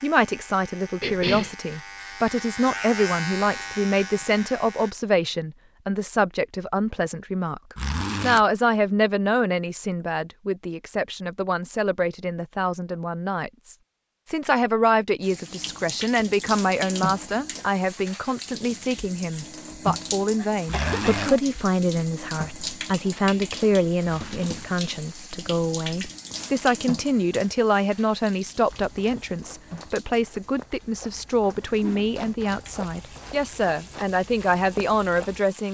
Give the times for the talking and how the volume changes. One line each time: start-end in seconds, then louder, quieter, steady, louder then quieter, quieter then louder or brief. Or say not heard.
0.0-35.7 steady.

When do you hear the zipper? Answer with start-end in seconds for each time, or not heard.
7.8-8.4, 20.6-21.4, 24.1-24.7.